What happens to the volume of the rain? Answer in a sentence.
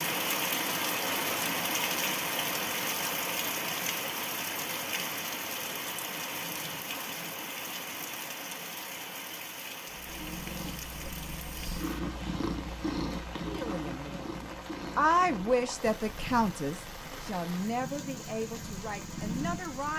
The volume of the rain goes down.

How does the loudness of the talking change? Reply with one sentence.
The volume of the talking goes up, then down.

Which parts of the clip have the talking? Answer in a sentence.
The talking can be heard from 13.4 to 19.9 s.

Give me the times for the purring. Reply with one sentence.
You can hear the purring from 9.8 to 19.9 s.